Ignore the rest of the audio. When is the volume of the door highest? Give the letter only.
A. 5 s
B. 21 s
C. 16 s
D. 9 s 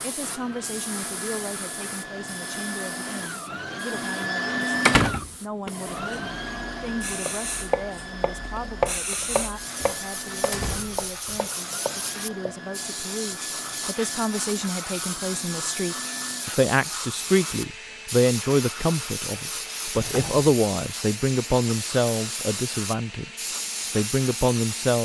A.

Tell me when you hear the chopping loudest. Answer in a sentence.
The volume of the chopping peaks at 9 seconds.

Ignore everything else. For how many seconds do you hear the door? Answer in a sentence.
You can hear the door for 3 seconds altogether.